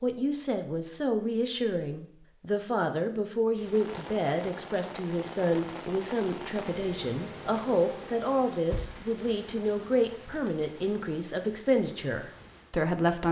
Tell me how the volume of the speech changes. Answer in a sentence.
The loudness of the speech stays about the same.